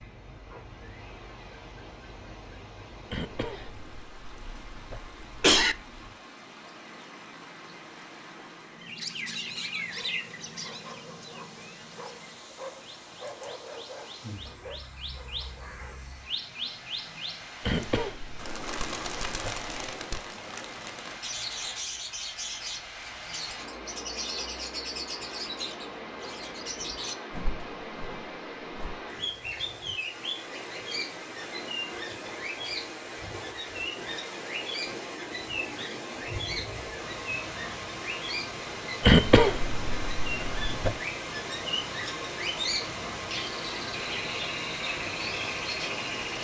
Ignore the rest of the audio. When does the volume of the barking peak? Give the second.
13 s.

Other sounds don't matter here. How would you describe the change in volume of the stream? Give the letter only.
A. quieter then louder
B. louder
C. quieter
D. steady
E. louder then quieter
B.